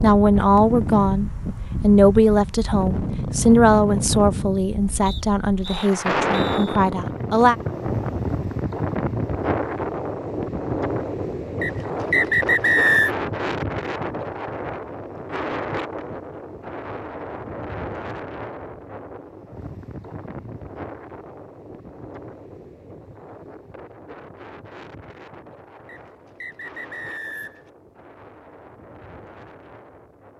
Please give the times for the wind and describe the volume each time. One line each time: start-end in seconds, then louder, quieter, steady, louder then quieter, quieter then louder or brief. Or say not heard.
0.0-30.3 quieter.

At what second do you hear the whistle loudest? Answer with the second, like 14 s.
13 s.